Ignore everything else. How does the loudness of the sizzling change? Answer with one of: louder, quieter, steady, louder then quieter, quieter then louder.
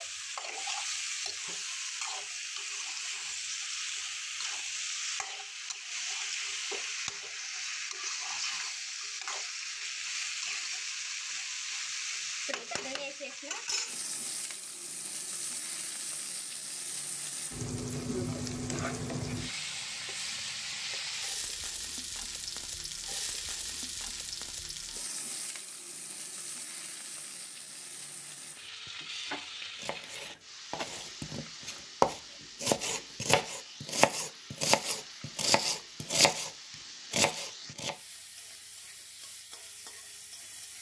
quieter.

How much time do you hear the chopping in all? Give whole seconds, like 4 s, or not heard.
8 s.